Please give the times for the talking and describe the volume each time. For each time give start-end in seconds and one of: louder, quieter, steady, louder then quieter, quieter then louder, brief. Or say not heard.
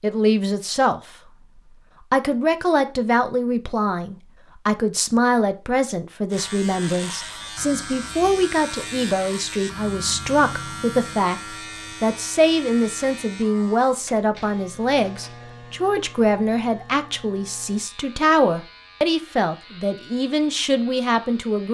0.0-1.1 brief
2.1-21.6 steady.